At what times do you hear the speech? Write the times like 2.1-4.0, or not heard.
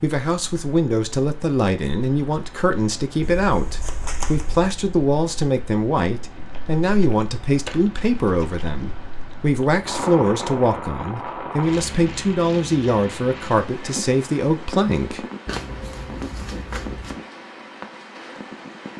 0.0-15.2.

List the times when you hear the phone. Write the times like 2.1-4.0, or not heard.
not heard.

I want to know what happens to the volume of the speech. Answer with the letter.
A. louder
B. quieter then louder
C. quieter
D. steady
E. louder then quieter
D.